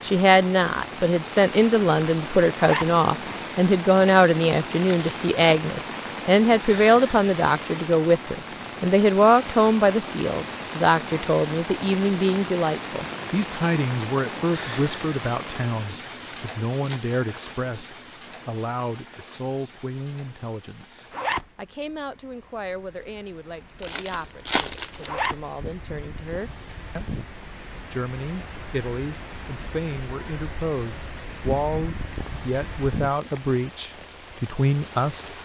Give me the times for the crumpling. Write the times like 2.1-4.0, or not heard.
4.7-5.5, 16.1-17.0, 23.8-25.1.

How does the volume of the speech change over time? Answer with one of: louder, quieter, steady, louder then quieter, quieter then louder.
quieter then louder.